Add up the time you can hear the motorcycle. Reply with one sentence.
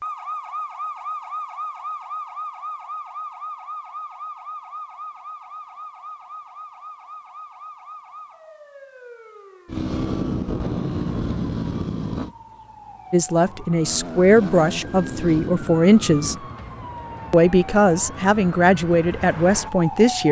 You can hear the motorcycle for 5 seconds altogether.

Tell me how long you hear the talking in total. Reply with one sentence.
The talking can be heard for 6 seconds in total.